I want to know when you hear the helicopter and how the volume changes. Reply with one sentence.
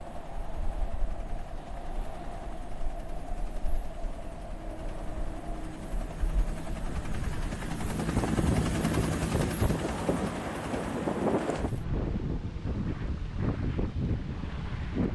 You can hear the helicopter from 0.0 to 14.9 s, getting louder then quieter.